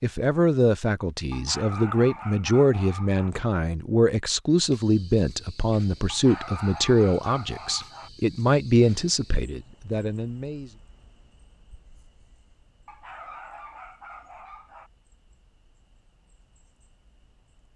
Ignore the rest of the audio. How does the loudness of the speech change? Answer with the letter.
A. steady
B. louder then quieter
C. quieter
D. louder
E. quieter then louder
A.